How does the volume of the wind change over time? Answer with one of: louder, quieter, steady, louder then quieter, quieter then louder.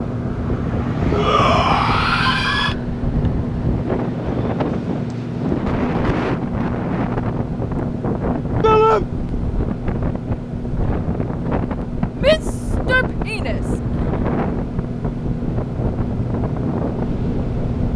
steady.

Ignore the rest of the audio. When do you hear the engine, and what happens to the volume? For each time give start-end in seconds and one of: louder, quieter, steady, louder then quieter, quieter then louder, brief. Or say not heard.
0.0-17.9 steady.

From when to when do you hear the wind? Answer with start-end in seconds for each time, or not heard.
0.0-17.9.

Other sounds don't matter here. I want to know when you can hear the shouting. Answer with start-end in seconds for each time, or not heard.
1.1-2.8, 8.6-9.1, 12.2-13.6.